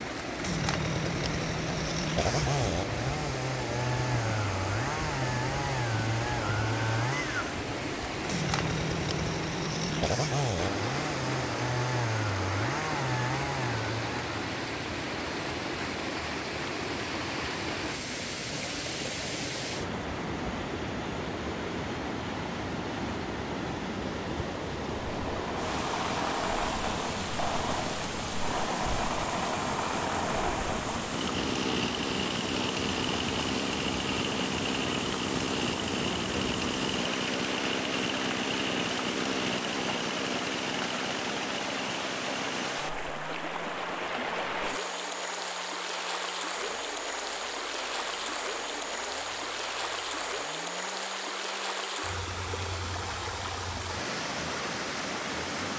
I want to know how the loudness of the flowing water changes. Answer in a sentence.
The loudness of the flowing water stays about the same.